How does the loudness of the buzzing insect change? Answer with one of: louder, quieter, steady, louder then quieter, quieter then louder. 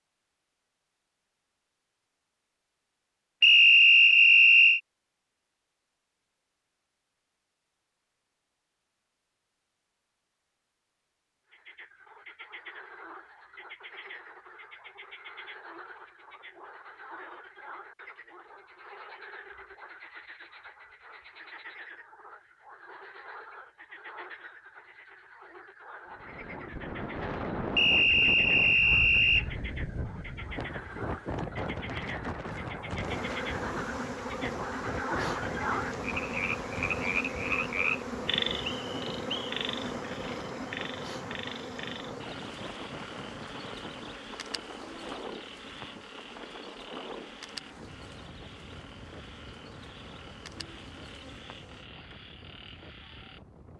quieter.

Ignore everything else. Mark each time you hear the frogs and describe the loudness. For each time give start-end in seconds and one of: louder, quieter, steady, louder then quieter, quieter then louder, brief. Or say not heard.
11.5-53.4 louder then quieter.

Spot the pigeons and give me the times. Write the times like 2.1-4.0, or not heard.
not heard.